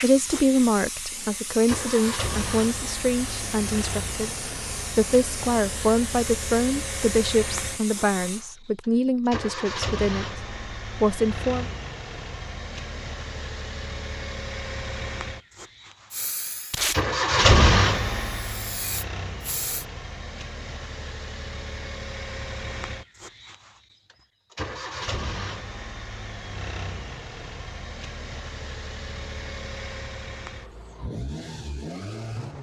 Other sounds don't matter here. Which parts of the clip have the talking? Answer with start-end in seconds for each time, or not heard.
0.0-4.3, 5.0-11.7.